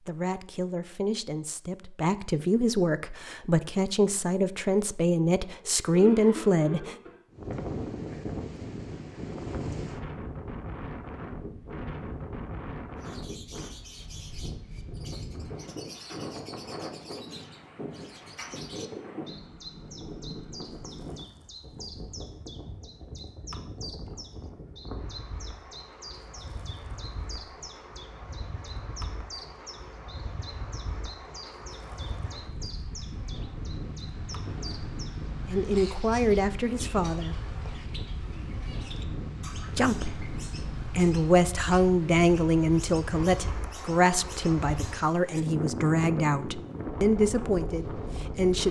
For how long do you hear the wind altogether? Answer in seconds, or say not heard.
41 s.